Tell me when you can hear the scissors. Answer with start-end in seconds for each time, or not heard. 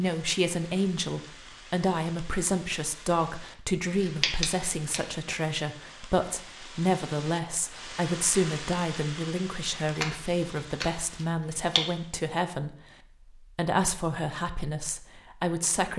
4.0-5.0, 9.8-11.8.